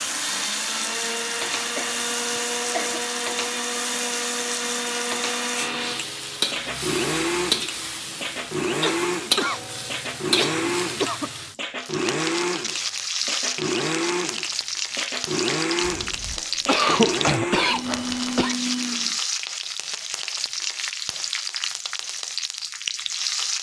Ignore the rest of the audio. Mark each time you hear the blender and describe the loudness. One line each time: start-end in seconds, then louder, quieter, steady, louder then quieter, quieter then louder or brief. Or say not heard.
0.0-19.2 steady.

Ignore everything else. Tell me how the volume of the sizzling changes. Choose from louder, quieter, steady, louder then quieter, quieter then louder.
steady.